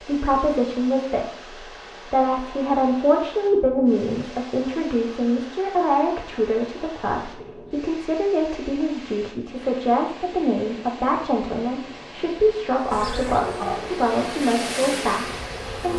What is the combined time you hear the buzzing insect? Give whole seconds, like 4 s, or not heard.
3 s.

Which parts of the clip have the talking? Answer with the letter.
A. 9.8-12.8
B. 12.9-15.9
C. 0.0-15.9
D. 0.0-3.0
C.